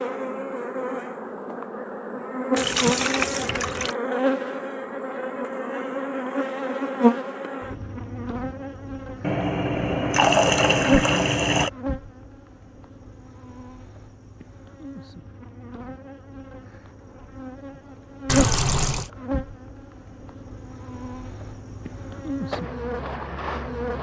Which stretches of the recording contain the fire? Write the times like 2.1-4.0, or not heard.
not heard.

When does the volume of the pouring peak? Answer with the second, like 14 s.
10 s.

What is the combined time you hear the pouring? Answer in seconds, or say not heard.
5 s.